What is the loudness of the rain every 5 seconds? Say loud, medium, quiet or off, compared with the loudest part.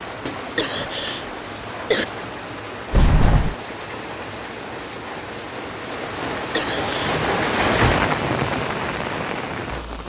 medium, loud.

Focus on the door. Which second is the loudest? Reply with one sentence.
The loudest moment of the door is at 3 seconds.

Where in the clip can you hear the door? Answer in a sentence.
The door can be heard from 2.9 to 3.5 s and from 7.0 to 8.1 s.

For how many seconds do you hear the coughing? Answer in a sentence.
The coughing can be heard for 3 seconds in total.